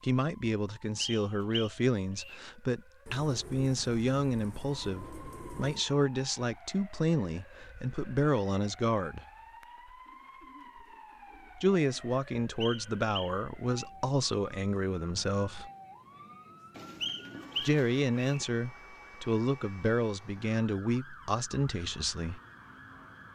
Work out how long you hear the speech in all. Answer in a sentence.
The speech can be heard for 18 seconds in total.